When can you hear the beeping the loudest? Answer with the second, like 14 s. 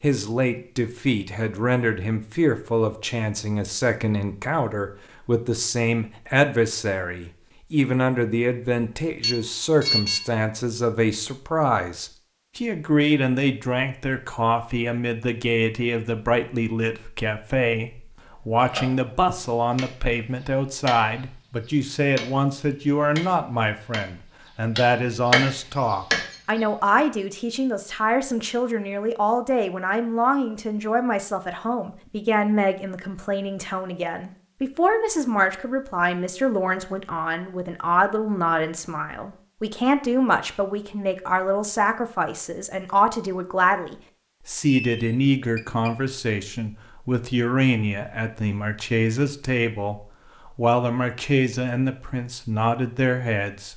10 s.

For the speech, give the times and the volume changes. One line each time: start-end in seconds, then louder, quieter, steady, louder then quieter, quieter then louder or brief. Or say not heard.
0.0-53.7 steady.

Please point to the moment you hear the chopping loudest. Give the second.
25 s.